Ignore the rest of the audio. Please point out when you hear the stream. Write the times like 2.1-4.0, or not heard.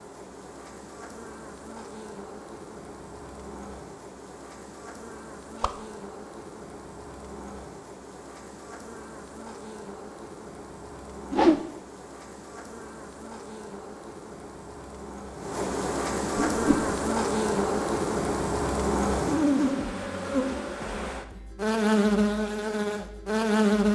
not heard.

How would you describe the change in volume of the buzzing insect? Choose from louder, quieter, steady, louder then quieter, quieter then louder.
louder.